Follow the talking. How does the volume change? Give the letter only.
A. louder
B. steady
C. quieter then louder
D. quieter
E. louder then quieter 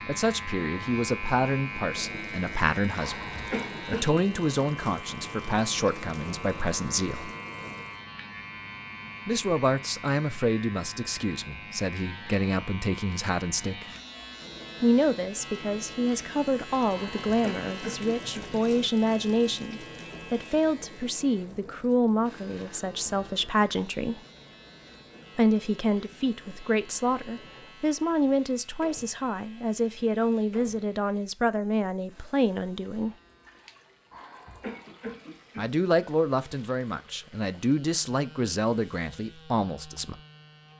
B.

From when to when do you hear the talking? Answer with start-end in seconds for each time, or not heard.
0.1-7.3, 9.2-13.8, 14.8-24.2, 25.4-33.1, 35.5-40.2.